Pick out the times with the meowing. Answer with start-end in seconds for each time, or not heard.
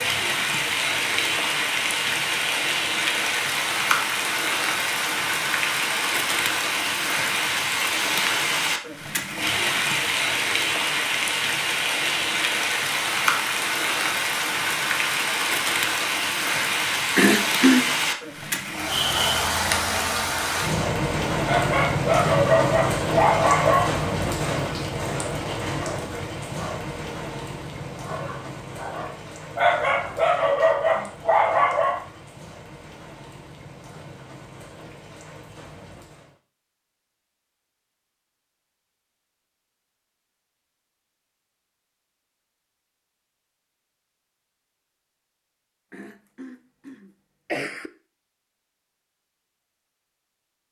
not heard.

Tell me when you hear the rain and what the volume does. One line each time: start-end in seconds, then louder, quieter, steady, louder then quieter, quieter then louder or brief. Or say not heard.
0.0-36.4 quieter.